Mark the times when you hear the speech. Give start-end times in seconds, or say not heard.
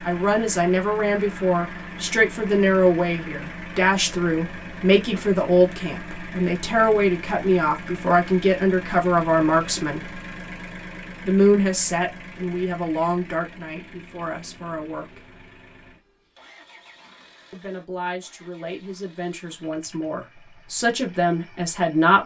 0.1-10.2, 11.2-15.2, 17.5-22.2.